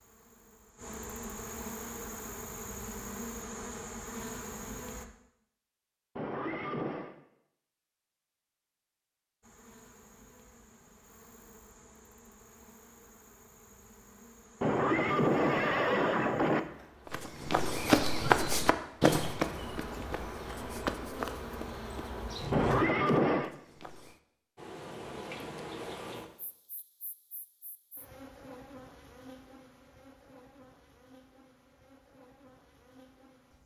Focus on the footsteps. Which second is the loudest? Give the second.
18 s.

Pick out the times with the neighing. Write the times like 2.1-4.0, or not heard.
6.2-7.1, 14.6-16.6, 22.5-23.5.